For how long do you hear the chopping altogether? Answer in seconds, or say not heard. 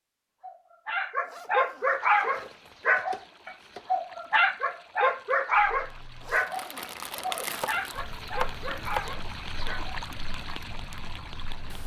3 s.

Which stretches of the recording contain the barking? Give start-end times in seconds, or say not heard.
0.4-9.9.